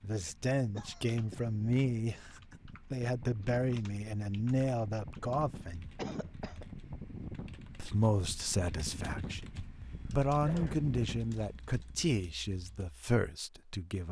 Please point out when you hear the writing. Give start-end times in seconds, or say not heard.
not heard.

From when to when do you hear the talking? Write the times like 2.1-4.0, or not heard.
0.0-5.8, 7.8-14.0.